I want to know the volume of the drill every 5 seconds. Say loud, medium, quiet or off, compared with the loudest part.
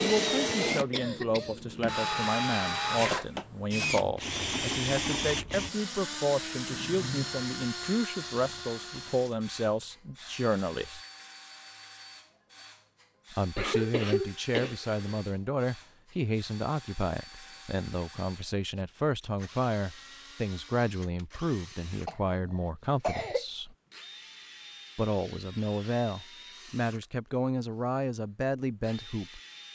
loud, medium, quiet, quiet, quiet, quiet.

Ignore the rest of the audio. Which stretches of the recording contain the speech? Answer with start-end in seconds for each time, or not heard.
0.0-11.0, 13.3-23.8, 24.9-29.4.